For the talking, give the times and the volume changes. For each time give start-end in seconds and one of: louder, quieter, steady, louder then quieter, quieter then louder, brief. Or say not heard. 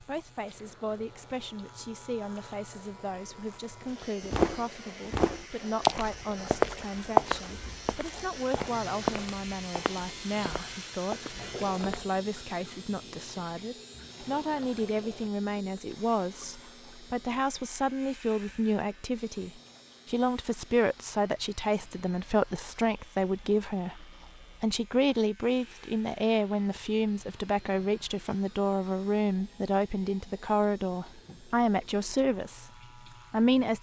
0.0-32.7 louder
33.3-33.7 brief.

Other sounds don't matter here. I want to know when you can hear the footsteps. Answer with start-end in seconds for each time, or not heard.
4.2-12.1.